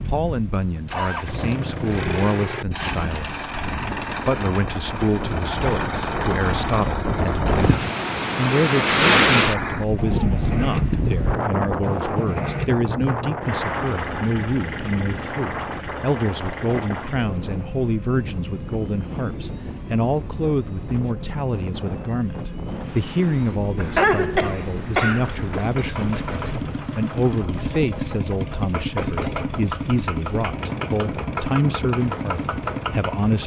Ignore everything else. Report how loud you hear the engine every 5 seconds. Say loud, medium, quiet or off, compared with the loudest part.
loud, loud, loud, medium, medium, loud, loud.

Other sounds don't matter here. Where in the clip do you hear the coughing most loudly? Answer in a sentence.
The volume of the coughing peaks at 24 seconds.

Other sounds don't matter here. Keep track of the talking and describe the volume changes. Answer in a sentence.
The volume of the talking stays about the same.